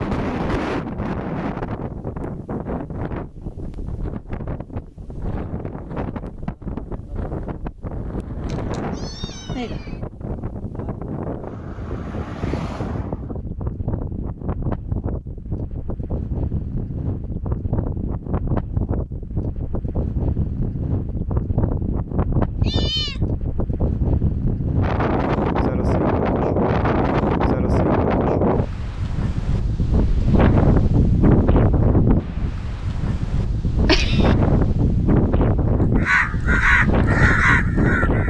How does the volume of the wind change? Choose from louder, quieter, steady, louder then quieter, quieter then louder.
louder.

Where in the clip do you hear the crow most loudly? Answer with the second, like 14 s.
37 s.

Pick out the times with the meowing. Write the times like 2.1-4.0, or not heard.
8.4-10.0, 22.6-23.2, 33.9-34.4.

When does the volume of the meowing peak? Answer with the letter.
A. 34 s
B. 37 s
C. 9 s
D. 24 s
A.